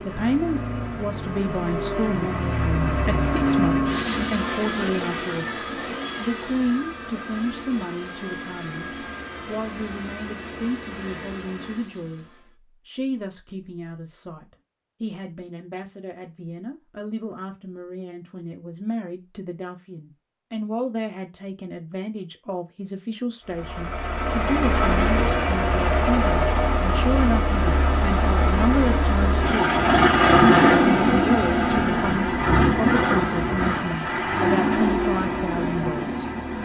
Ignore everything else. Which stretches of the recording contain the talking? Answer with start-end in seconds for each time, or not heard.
0.0-29.8, 30.4-36.2.